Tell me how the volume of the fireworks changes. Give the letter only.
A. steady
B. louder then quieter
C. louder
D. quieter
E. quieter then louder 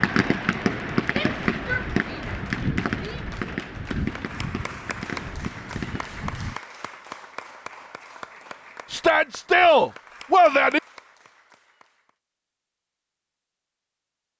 D.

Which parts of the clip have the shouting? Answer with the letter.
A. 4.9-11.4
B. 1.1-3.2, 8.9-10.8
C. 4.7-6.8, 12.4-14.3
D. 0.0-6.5
B.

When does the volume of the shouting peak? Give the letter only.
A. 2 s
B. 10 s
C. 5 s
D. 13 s
B.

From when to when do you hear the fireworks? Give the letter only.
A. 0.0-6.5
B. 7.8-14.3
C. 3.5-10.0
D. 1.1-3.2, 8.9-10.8
A.